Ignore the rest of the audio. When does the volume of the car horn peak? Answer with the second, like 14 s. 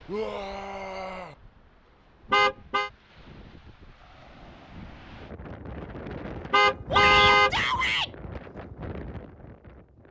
7 s.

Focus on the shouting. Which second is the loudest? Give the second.
8 s.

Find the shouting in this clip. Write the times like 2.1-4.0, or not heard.
0.1-1.4, 6.9-8.1.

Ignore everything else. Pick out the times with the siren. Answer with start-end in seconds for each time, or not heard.
not heard.